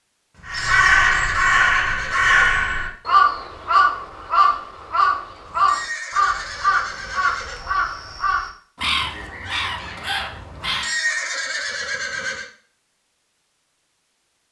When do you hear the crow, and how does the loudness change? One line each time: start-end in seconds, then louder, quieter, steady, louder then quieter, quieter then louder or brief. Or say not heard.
0.5-10.9 quieter.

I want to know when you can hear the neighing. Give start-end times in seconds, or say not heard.
0.3-2.7, 5.5-7.6, 10.6-12.4.